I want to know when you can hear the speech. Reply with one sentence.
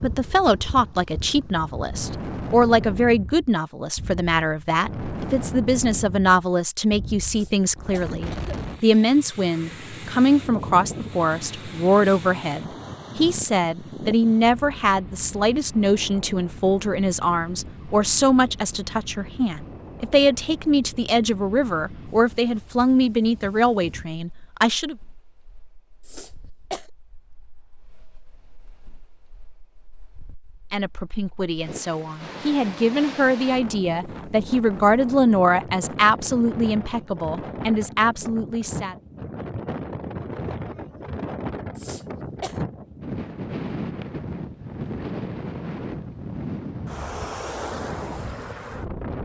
The speech can be heard from 0.0 to 24.9 s and from 30.7 to 39.0 s.